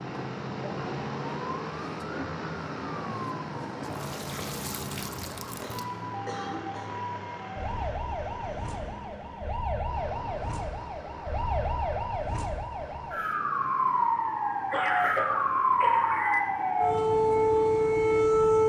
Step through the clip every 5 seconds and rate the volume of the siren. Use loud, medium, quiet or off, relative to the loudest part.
quiet, quiet, medium, loud.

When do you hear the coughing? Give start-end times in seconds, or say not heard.
5.6-7.0, 14.7-16.4.